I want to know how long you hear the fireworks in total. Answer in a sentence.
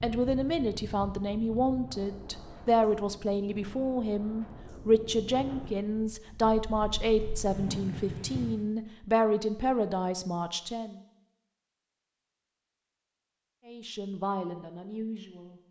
The fireworks can't be heard in this clip.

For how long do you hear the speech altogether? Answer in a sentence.
The speech can be heard for 13 seconds in total.